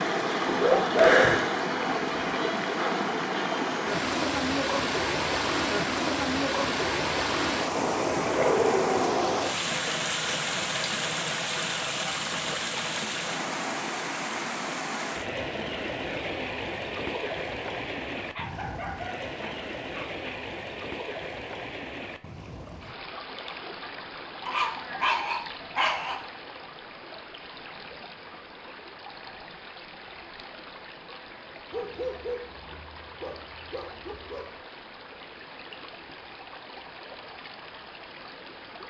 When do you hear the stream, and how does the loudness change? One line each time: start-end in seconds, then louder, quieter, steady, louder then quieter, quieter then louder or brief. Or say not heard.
0.0-38.8 quieter.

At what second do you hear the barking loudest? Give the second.
1 s.